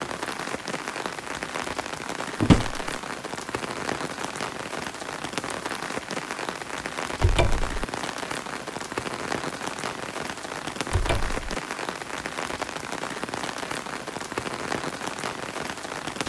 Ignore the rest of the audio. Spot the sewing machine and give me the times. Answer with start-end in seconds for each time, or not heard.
not heard.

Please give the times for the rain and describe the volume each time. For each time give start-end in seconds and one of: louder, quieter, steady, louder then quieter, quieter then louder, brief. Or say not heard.
0.0-16.2 steady.